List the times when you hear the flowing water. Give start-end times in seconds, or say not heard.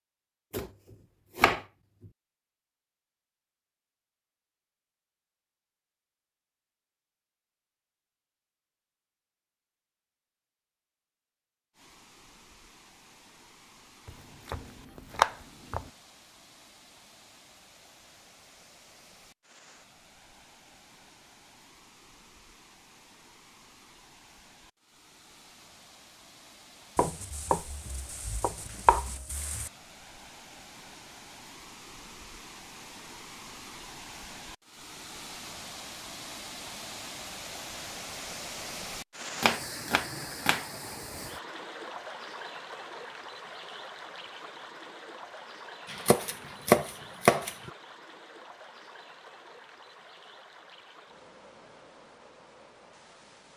11.7-53.5.